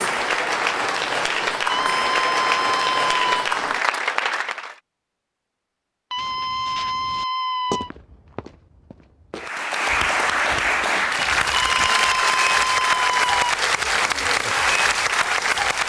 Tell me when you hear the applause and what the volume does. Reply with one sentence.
You can hear the applause from 0.0 to 4.8 s, at a steady volume; and from 9.3 to 15.8 s, at a steady volume.